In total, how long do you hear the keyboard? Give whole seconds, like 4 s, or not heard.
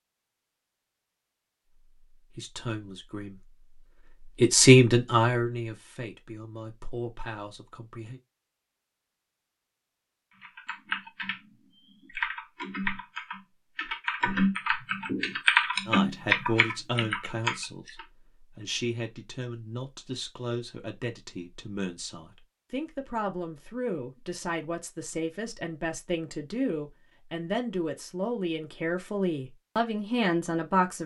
8 s.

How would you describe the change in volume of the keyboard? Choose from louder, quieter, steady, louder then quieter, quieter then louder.
louder.